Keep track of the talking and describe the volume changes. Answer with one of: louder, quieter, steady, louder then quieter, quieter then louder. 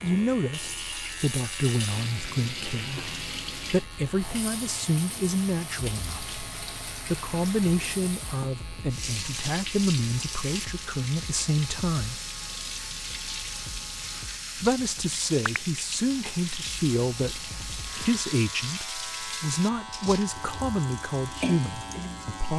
steady.